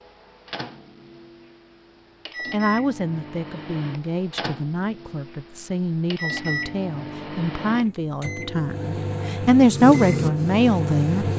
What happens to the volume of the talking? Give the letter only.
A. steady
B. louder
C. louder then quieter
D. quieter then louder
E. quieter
B.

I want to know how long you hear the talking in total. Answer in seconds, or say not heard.
9 s.